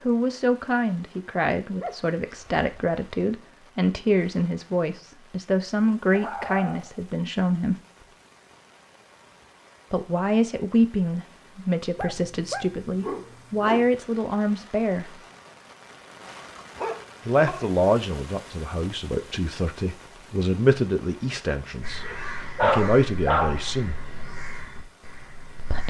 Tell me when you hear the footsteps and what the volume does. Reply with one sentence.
The footsteps can't be heard in this clip.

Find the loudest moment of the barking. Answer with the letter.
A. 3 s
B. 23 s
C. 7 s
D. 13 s
B.